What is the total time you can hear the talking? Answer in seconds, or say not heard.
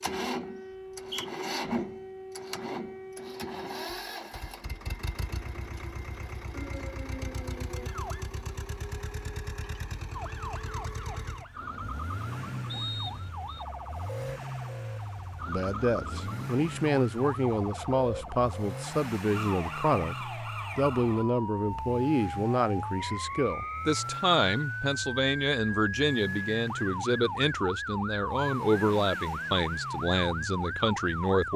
16 s.